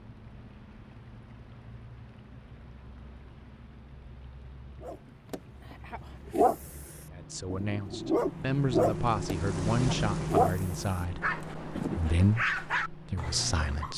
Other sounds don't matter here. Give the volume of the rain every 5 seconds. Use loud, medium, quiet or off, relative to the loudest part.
quiet, loud, loud.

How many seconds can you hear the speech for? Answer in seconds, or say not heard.
7 s.